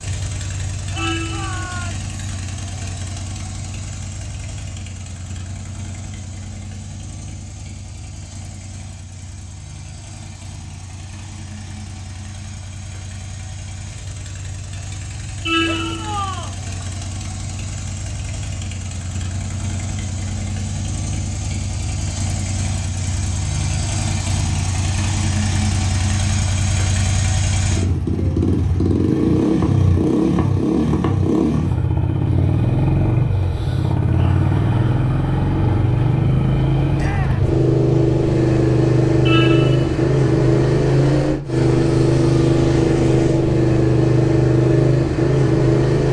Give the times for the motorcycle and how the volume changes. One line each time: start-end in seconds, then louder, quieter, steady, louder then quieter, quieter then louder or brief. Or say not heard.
0.0-46.0 louder.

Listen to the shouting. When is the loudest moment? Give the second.
16 s.